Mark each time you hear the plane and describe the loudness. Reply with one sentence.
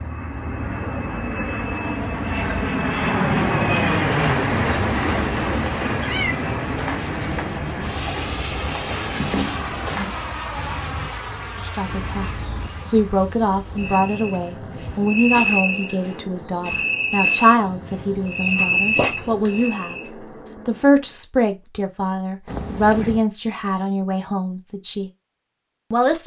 You can hear the plane from 0.0 to 21.2 s, getting quieter.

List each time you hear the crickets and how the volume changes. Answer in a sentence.
The crickets can be heard from 0.0 to 20.1 s, getting louder.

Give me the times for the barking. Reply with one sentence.
You can't hear the barking here.